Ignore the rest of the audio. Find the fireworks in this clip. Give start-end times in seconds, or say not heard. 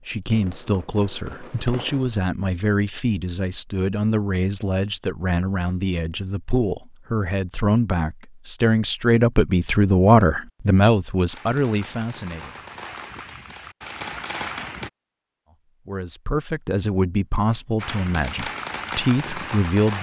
0.0-2.2, 11.3-14.9, 17.8-19.9.